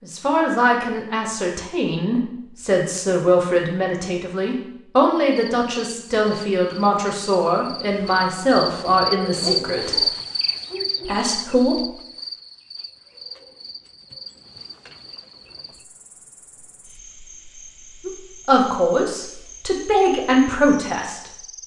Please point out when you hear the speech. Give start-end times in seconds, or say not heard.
0.0-10.1, 11.1-11.9, 18.1-21.4.